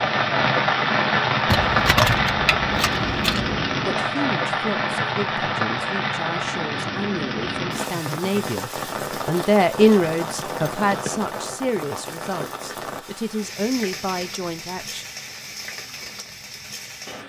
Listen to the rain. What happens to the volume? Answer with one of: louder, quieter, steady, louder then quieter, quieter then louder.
quieter.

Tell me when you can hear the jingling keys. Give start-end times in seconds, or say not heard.
1.4-3.5, 10.3-11.2.